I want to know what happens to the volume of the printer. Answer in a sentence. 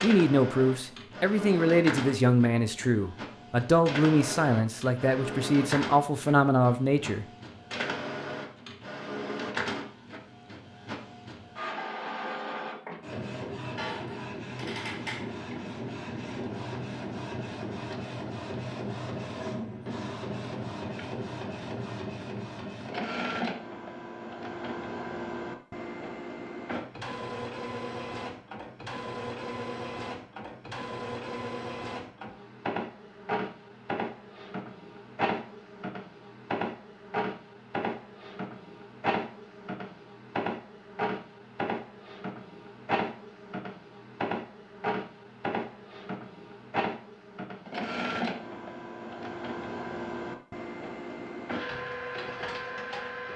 The volume of the printer stays about the same.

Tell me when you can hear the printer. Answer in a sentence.
The printer can be heard from 0.0 to 53.3 s.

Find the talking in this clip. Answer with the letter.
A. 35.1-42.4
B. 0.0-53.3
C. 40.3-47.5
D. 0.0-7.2
D.